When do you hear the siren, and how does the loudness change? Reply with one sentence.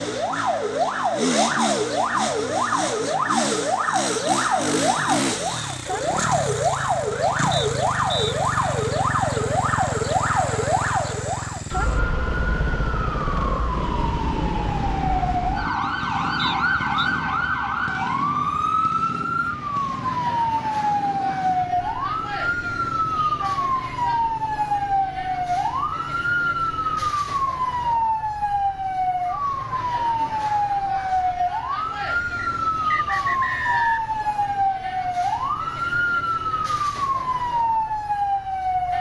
The siren can be heard from 0.0 to 38.9 s, at a steady volume.